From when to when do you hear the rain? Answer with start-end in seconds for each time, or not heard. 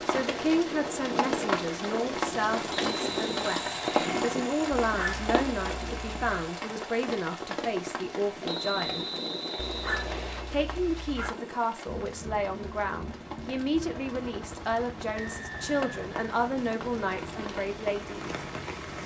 0.0-19.0.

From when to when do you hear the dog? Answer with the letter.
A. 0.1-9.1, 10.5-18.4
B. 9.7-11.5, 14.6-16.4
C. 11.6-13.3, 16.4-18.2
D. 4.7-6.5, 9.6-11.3
D.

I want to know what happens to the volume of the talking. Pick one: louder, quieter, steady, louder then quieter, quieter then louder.
steady.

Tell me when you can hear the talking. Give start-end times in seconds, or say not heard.
0.1-9.1, 10.5-18.4.